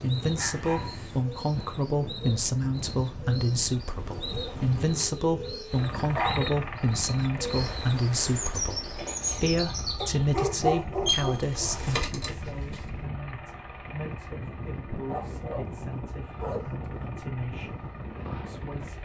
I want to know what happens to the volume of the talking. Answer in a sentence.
The loudness of the talking goes down.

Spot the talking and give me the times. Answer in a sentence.
The talking can be heard from 0.0 to 19.0 s.